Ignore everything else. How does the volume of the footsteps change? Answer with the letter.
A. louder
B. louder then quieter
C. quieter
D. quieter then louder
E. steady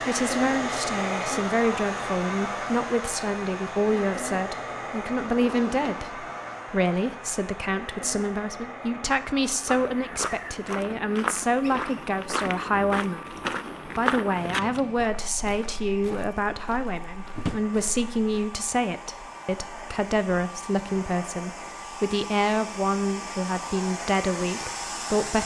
C.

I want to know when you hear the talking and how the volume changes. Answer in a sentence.
You can hear the talking from 0.0 to 25.4 s, at a steady volume.